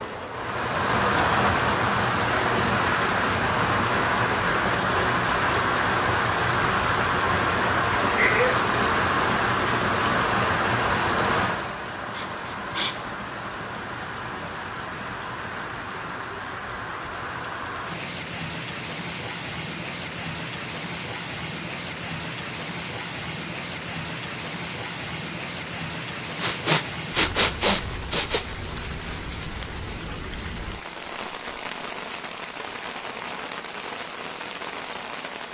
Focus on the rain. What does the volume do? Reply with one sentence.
The loudness of the rain goes down.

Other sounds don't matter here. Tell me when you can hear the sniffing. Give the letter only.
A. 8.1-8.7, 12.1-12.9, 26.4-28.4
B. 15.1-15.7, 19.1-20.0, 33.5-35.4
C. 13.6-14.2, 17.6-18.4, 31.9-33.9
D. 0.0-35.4
A.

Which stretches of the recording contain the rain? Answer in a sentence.
You can hear the rain from 0.0 to 35.4 s.